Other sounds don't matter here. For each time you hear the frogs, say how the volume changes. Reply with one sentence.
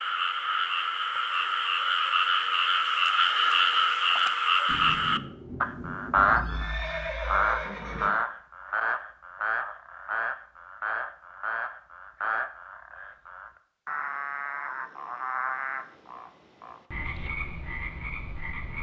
The frogs can be heard from 0.0 to 18.7 s, getting quieter.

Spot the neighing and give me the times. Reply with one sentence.
The neighing can be heard from 6.2 to 8.1 s.